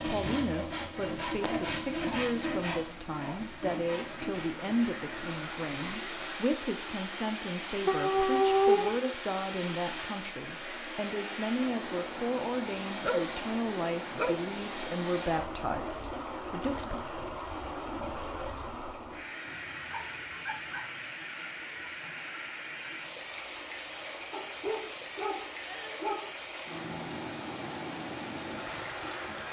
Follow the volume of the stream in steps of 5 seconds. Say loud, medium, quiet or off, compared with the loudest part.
medium, loud, loud, loud, loud, loud.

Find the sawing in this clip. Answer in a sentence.
The sawing can be heard from 0.0 to 6.2 s.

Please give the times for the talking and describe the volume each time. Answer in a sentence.
The talking can be heard from 0.0 to 17.0 s, at a steady volume.